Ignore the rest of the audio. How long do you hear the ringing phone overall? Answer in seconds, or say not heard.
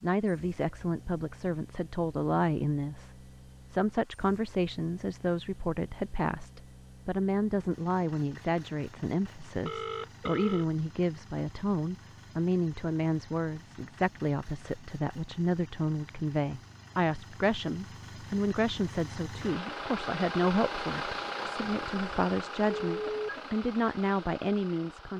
2 s.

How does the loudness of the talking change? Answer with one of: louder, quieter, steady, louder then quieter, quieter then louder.
steady.